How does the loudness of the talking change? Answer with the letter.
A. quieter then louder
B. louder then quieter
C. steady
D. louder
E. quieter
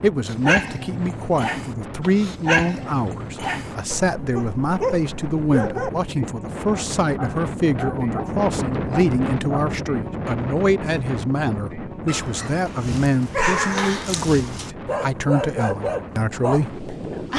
C.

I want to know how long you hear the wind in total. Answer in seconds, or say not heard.
17 s.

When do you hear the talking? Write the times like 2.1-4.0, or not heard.
0.0-17.3.